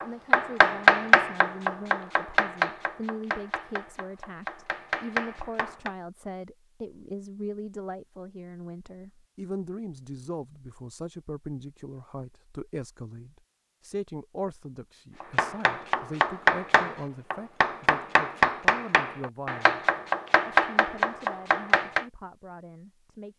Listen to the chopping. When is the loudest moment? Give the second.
1 s.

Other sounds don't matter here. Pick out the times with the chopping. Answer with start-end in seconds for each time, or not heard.
0.0-5.9, 15.2-22.1.